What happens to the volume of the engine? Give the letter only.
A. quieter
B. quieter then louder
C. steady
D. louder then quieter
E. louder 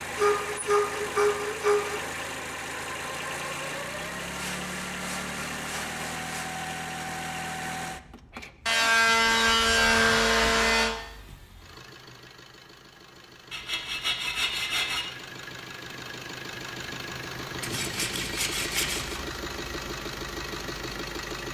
B.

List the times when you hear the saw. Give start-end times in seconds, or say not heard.
0.1-2.0, 4.3-6.5, 8.7-10.9, 13.5-15.1, 17.6-19.1.